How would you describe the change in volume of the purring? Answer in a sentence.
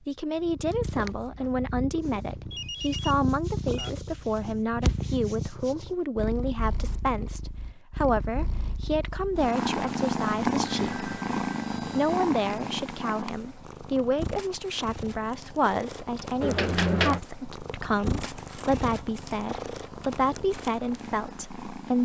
The volume of the purring goes up, then down.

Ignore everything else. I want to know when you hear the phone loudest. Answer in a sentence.
The volume of the phone peaks at 17 seconds.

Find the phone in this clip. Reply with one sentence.
The phone can be heard from 2.5 to 3.9 s, from 10.8 to 12.2 s and from 16.4 to 17.2 s.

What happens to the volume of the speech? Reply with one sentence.
The loudness of the speech stays about the same.